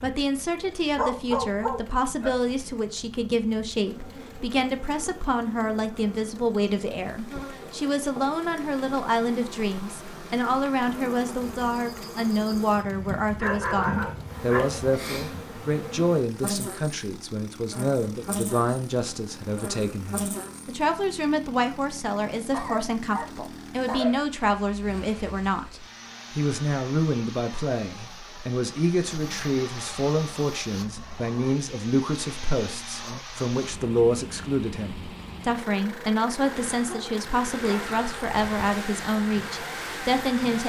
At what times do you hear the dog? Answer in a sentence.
You can hear the dog from 0.9 to 2.3 s, from 12.9 to 14.8 s, from 22.5 to 24.2 s and from 36.9 to 38.7 s.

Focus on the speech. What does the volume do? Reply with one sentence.
The volume of the speech stays about the same.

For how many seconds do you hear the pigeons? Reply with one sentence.
The pigeons can't be heard in this clip.